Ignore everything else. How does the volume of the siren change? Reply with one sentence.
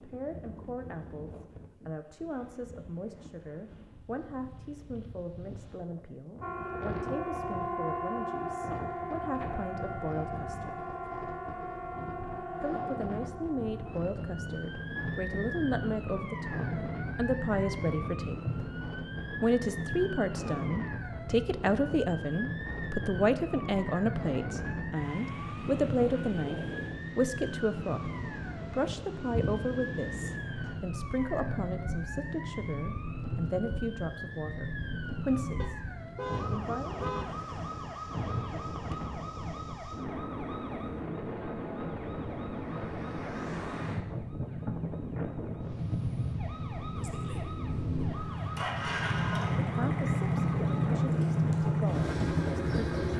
The volume of the siren goes down.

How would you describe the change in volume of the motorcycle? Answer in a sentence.
The loudness of the motorcycle goes up.